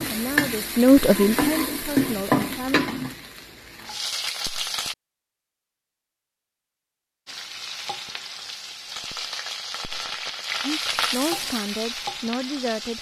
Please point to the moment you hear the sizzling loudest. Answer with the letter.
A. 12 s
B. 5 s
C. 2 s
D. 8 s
C.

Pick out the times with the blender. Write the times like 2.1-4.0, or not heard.
not heard.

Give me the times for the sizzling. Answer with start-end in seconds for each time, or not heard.
0.0-5.0, 7.2-12.9.